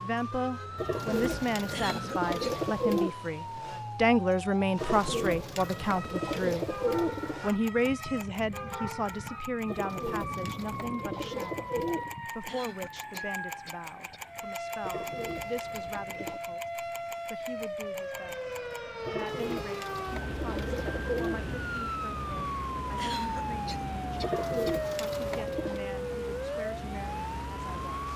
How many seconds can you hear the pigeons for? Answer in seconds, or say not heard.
13 s.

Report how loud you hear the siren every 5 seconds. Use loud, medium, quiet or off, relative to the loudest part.
medium, medium, medium, loud, loud, loud.